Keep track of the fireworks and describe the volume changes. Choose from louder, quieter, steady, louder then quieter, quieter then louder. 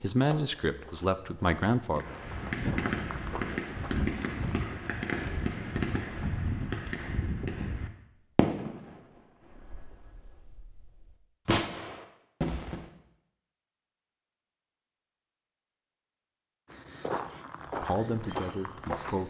steady.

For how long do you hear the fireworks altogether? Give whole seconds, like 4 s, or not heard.
11 s.